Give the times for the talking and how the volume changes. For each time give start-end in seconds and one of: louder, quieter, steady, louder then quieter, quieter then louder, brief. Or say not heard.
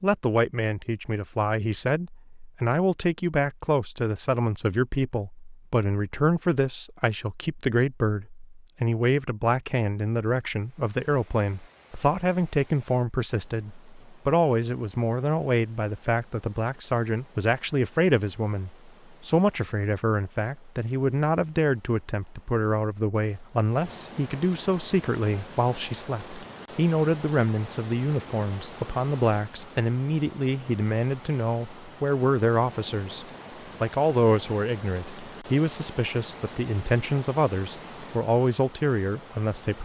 0.0-39.8 steady.